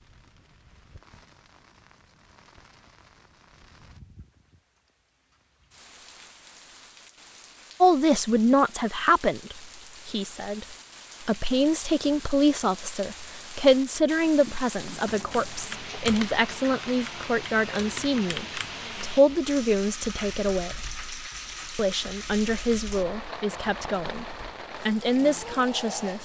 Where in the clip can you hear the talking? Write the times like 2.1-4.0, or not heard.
7.8-10.7, 11.2-20.8, 21.8-26.1.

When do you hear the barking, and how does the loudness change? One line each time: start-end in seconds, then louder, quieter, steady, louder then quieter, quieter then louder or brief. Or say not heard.
not heard.